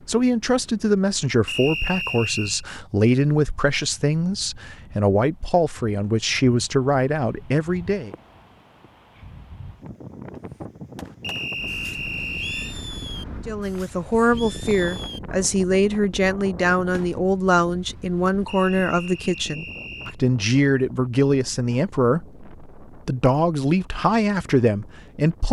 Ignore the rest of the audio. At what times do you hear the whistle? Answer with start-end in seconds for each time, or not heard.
1.4-2.6, 11.2-12.8, 18.4-20.1.